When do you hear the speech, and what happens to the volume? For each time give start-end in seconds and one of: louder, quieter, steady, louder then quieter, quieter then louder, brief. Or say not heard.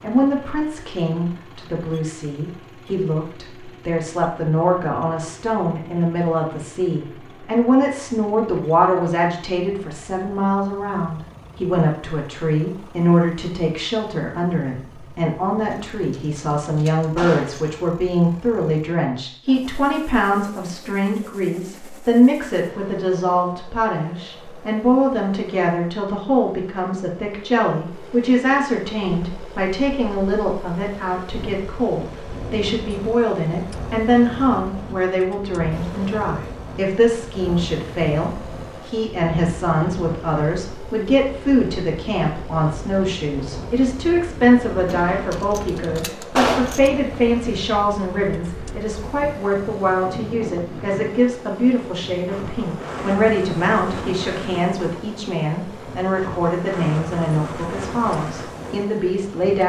0.0-59.6 steady.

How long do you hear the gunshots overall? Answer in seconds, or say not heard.
4 s.